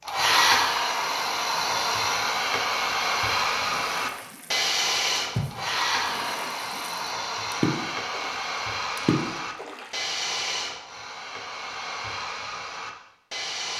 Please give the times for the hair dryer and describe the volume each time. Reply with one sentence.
The hair dryer can be heard from 0.1 to 13.7 s, getting quieter.